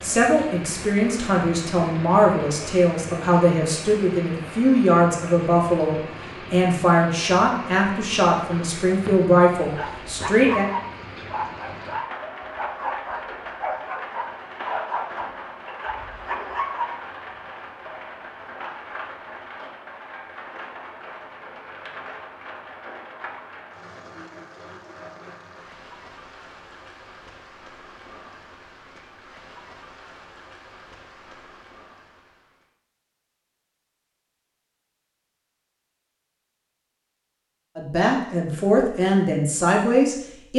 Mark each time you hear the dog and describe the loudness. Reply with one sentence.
You can hear the dog from 9.6 to 17.0 s, at a steady volume.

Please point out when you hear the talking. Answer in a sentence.
You can hear the talking from 0.0 to 10.7 s and from 37.8 to 40.5 s.